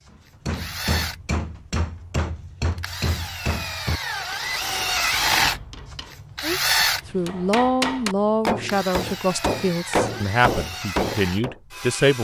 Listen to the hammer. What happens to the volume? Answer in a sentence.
The volume of the hammer goes down, then up.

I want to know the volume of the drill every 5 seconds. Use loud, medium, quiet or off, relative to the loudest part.
medium, loud, medium.